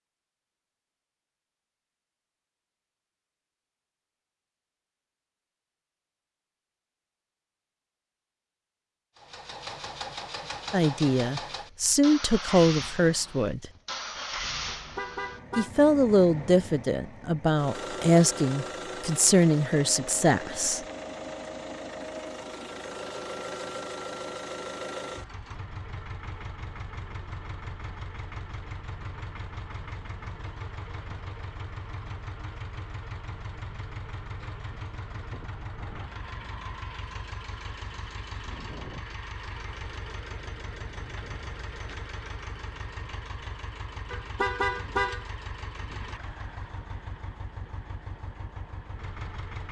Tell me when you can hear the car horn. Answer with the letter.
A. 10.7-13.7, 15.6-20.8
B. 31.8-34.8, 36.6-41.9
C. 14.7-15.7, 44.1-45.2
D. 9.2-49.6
C.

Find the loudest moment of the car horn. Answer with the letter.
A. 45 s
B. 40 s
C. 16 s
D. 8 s
A.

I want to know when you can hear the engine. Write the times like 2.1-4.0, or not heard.
9.2-49.6.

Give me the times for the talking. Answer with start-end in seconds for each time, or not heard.
10.7-13.7, 15.6-20.8.